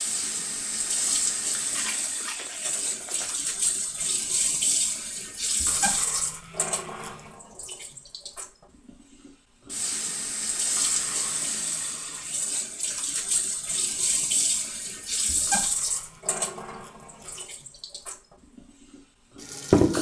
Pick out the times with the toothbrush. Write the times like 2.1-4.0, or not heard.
1.6-3.4, 5.7-7.3, 10.8-12.6, 15.4-17.4.